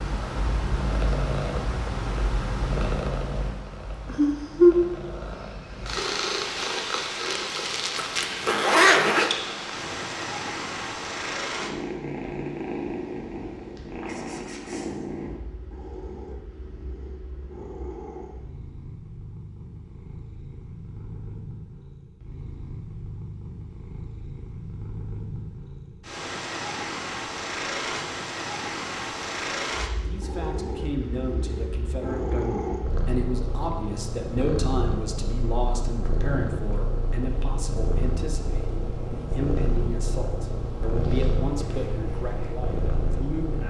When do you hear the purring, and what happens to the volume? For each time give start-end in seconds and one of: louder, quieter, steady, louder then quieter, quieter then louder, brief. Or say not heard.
0.0-43.6 quieter then louder.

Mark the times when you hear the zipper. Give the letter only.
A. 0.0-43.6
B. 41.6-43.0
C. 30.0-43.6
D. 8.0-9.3
D.